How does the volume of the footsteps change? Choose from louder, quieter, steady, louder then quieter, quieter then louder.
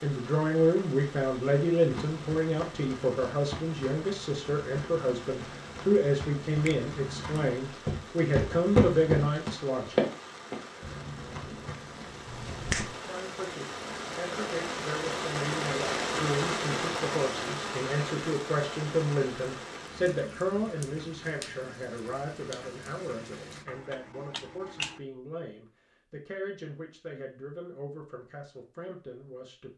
louder then quieter.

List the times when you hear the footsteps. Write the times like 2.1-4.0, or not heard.
1.8-12.9.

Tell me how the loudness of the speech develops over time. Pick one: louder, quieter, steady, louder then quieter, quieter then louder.
quieter.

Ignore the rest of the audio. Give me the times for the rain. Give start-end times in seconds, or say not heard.
0.0-23.6.